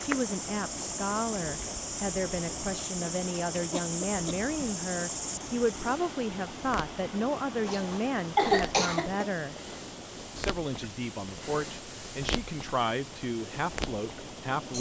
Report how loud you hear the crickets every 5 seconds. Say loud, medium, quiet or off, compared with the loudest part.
loud, medium, medium.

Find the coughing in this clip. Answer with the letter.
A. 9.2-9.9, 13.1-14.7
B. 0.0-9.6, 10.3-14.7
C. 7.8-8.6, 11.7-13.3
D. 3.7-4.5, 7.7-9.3
D.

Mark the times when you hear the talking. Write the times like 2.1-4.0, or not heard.
0.0-9.6, 10.3-14.7.